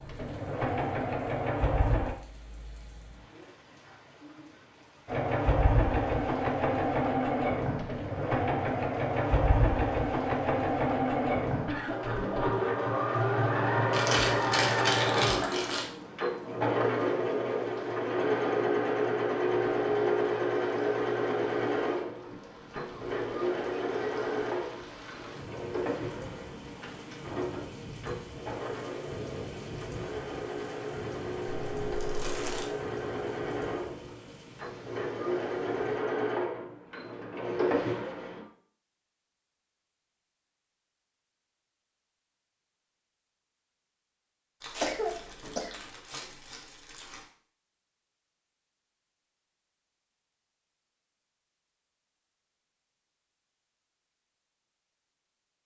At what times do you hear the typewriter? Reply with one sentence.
You can't hear the typewriter here.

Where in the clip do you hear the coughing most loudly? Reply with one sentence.
The loudest moment of the coughing is at 45 seconds.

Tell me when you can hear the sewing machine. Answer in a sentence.
You can hear the sewing machine from 0.0 to 2.1 s and from 5.0 to 38.5 s.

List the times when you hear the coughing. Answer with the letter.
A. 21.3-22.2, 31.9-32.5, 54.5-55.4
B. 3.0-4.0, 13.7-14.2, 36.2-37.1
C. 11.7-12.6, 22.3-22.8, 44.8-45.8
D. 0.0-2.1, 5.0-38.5
C.